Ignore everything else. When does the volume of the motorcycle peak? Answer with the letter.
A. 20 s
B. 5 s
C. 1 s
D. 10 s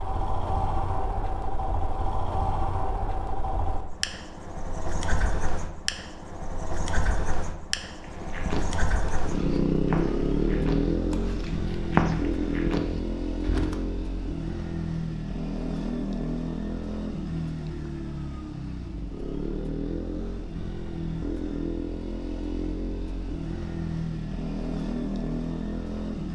D.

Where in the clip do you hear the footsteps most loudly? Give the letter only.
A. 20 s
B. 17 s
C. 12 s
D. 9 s
C.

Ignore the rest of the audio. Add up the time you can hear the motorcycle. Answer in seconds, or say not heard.
26 s.